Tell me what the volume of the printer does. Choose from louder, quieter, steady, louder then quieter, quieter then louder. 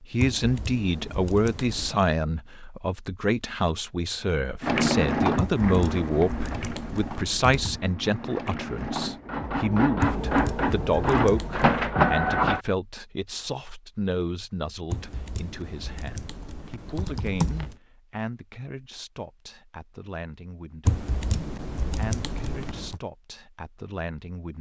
quieter then louder.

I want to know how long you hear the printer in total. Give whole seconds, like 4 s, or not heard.
8 s.